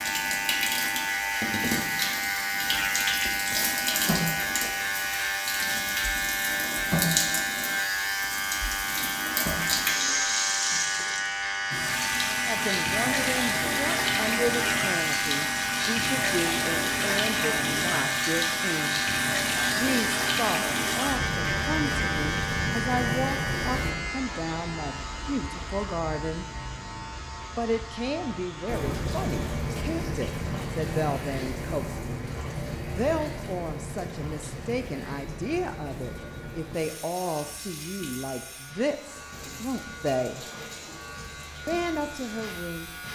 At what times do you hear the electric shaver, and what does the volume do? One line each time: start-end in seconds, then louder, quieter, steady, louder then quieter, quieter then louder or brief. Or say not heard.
0.0-43.1 quieter.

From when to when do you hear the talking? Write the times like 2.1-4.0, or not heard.
12.4-19.1, 19.8-26.4, 27.6-40.5, 41.6-42.9.